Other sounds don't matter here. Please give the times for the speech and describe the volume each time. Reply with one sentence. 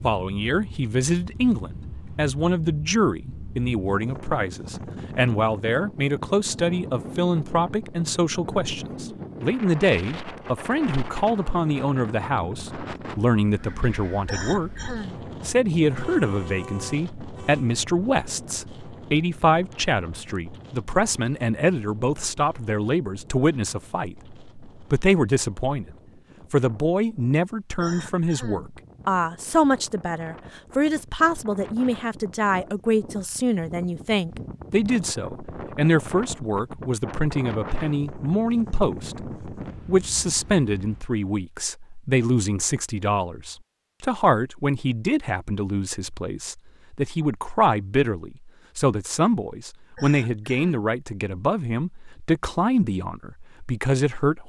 The speech can be heard from 0.0 to 54.4 s, at a steady volume.